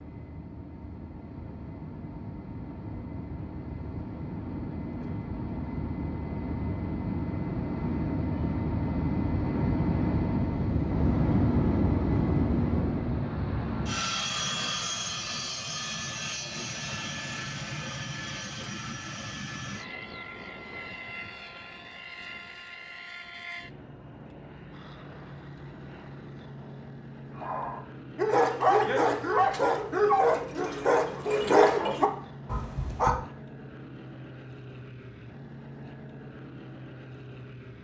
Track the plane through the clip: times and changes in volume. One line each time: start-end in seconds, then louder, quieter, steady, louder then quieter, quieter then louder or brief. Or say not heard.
0.0-37.7 louder then quieter.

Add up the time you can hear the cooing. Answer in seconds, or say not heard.
not heard.